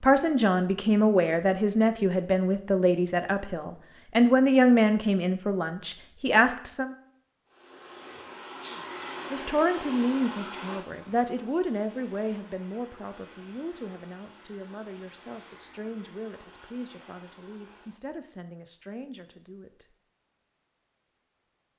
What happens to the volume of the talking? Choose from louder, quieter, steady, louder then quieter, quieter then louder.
quieter.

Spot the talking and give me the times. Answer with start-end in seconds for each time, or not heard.
0.0-7.0, 9.3-19.9.